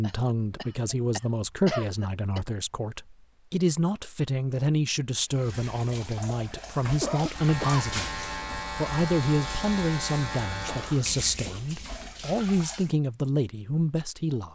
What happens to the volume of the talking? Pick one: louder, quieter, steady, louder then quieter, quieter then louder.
steady.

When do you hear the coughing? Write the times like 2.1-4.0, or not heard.
0.0-2.4, 6.8-7.8, 10.7-12.2.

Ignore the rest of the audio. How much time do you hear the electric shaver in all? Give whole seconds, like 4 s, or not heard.
4 s.